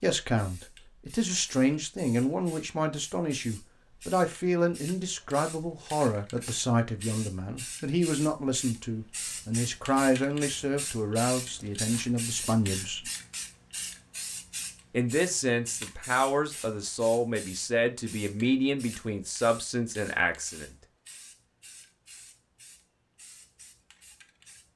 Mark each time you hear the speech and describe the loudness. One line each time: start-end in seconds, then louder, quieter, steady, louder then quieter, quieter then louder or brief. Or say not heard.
0.0-13.1 steady
14.9-20.7 steady.